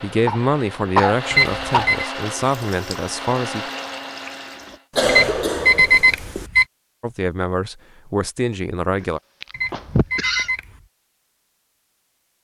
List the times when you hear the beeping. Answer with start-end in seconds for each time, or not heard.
1.3-2.1, 5.0-6.7, 9.5-10.8.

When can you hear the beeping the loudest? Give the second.
6 s.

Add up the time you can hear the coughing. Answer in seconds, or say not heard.
5 s.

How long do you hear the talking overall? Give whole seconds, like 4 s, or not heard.
6 s.